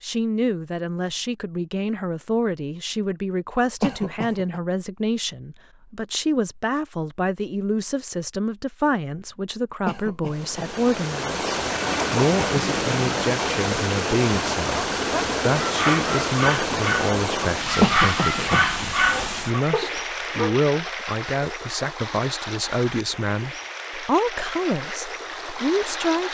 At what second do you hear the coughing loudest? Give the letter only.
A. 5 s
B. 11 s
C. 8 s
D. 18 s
D.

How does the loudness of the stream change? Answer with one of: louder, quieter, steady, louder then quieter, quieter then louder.
quieter.